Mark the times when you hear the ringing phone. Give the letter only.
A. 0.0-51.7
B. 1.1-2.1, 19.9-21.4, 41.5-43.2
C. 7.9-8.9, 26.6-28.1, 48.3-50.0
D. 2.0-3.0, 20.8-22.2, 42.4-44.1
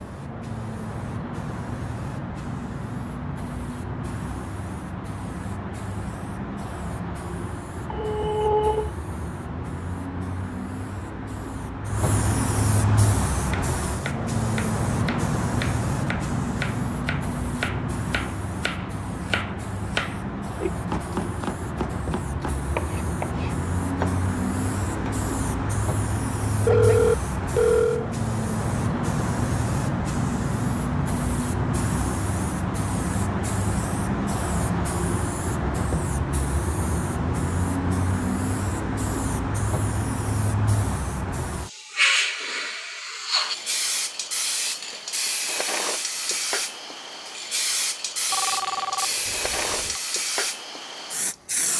C.